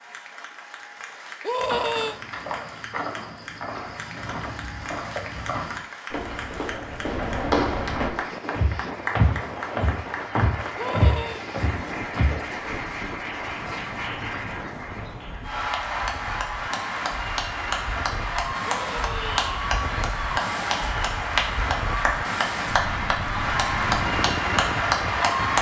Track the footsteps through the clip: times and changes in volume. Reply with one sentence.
The footsteps can be heard from 1.6 to 12.3 s, getting louder.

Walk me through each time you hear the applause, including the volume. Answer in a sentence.
You can hear the applause from 0.0 to 25.5 s, getting louder.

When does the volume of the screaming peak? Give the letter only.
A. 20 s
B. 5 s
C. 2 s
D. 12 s
C.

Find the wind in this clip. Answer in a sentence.
You can hear the wind from 8.0 to 25.5 s.